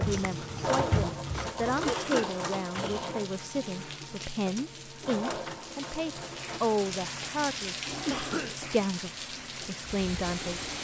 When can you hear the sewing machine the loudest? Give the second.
1 s.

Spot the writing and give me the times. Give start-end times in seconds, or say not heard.
0.0-1.9.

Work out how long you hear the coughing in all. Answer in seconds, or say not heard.
2 s.